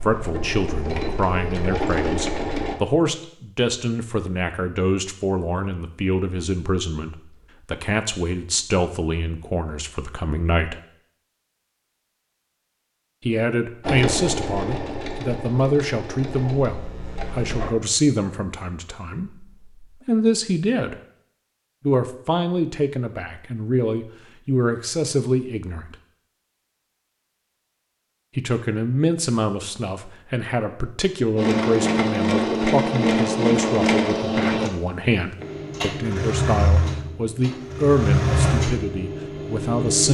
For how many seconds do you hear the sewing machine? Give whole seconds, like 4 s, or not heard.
15 s.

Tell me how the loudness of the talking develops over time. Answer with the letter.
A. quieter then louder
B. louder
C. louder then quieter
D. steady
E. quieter
D.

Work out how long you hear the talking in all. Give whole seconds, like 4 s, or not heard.
34 s.